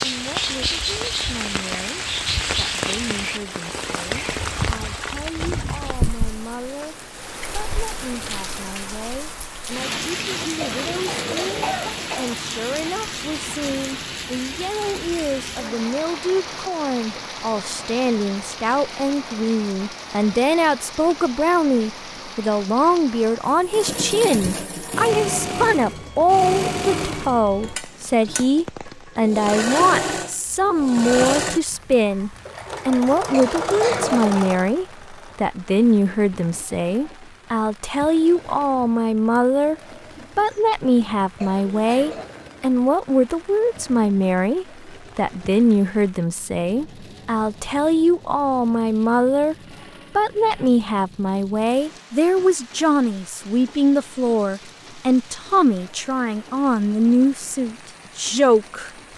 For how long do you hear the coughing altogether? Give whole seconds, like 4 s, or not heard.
4 s.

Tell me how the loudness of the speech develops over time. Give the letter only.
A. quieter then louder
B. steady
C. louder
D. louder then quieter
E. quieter
C.